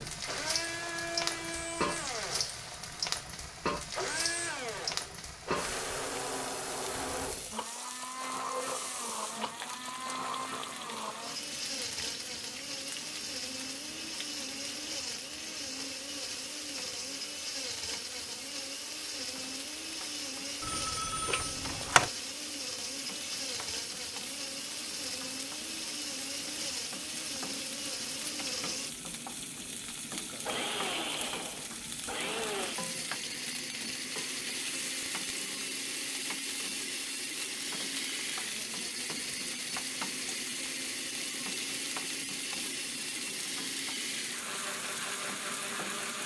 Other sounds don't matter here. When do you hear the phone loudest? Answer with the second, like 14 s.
22 s.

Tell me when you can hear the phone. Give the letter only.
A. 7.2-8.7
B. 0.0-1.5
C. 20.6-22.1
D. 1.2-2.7
C.